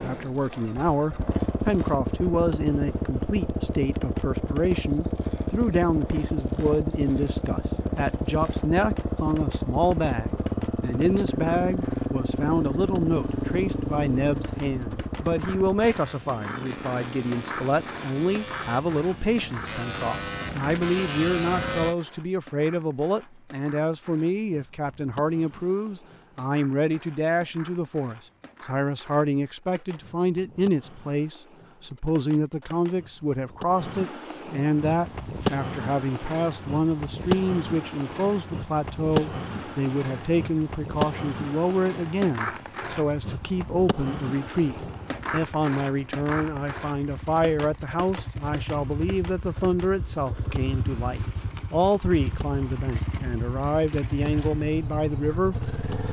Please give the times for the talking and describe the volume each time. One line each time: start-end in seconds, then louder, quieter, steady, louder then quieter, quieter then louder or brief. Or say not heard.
0.0-56.0 steady.